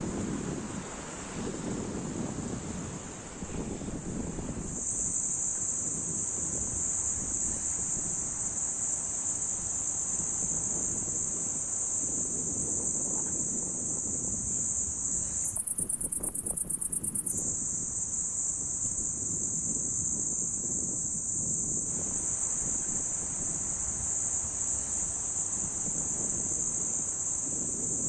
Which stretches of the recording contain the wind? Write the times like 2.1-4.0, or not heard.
0.0-28.0.